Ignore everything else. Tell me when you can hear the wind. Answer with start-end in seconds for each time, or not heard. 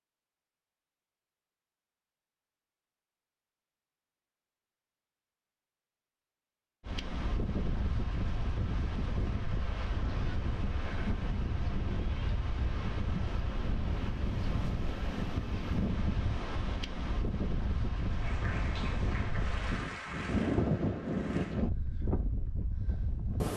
6.8-23.5.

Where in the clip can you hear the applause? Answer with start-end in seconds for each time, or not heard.
18.1-21.6.